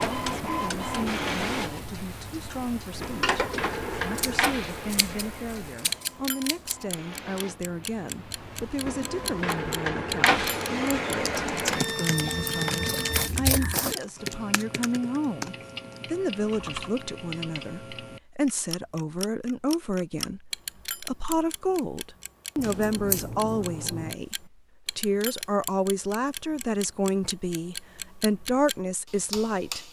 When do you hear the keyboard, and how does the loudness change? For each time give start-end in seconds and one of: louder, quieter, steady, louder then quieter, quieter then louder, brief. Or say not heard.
11.1-16.9 quieter.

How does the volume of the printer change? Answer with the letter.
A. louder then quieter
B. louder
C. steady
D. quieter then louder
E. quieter
D.